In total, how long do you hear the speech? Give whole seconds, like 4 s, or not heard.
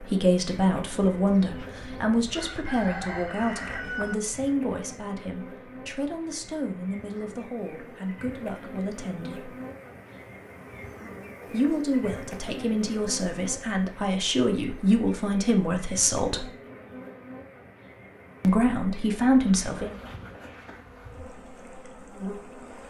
16 s.